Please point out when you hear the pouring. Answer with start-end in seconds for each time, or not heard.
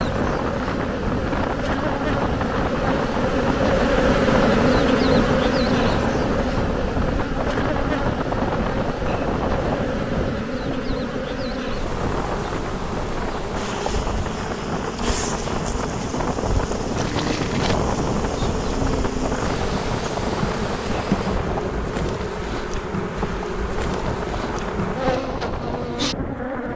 16.9-17.8.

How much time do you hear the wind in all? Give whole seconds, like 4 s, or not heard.
27 s.